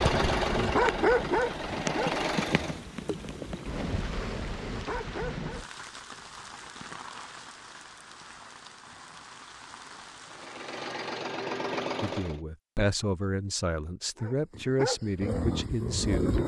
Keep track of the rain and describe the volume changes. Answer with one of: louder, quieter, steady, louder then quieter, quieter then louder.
quieter.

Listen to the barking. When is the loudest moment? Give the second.
1 s.